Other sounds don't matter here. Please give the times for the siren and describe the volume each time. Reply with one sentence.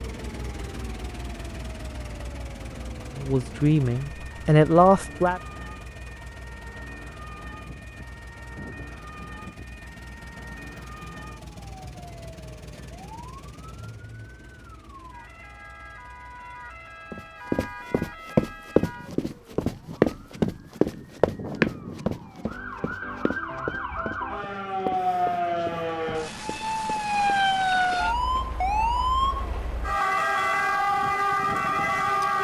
You can hear the siren from 0.0 to 32.3 s, getting louder.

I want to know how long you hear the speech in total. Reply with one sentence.
The speech can be heard for 2 seconds in total.